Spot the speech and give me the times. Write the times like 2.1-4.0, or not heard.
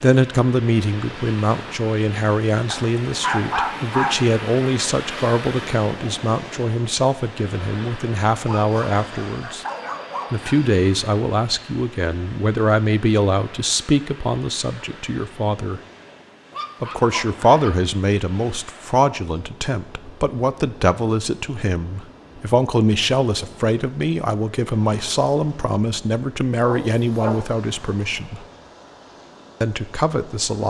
0.0-9.7, 10.3-15.8, 16.8-28.4, 29.6-30.6.